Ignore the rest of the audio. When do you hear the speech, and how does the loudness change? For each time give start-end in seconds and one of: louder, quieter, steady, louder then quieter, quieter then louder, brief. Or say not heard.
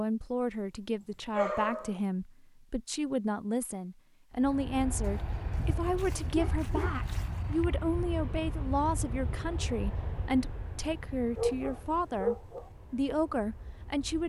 0.0-14.2 steady.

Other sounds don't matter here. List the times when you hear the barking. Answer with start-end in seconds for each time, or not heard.
1.4-2.0, 5.0-7.7, 11.3-12.7.